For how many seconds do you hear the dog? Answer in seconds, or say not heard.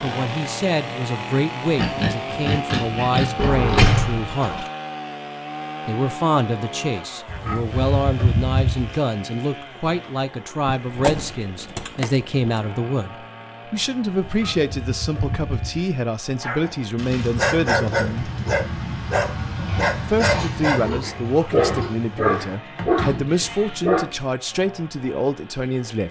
8 s.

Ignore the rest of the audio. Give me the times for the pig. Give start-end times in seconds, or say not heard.
1.8-3.6, 7.2-9.0, 14.2-15.8, 19.6-22.6.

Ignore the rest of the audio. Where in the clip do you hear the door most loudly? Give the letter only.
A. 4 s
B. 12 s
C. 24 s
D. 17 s
A.